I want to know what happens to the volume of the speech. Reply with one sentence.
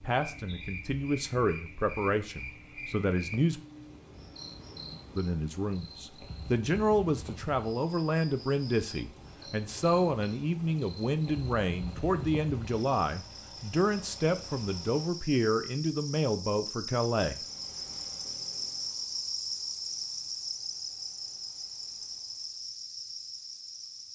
The loudness of the speech stays about the same.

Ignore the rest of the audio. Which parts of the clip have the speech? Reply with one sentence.
You can hear the speech from 0.0 to 3.6 s and from 5.2 to 17.4 s.